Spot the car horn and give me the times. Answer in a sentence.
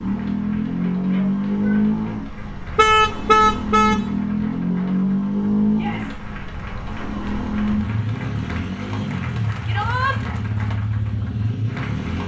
The car horn can be heard from 2.6 to 4.0 s.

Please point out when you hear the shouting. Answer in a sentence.
The shouting can be heard from 1.0 to 1.8 s, from 5.7 to 6.2 s and from 9.7 to 10.2 s.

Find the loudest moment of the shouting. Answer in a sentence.
The loudest moment of the shouting is at 10 seconds.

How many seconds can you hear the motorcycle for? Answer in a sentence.
The motorcycle can be heard for 12 seconds in total.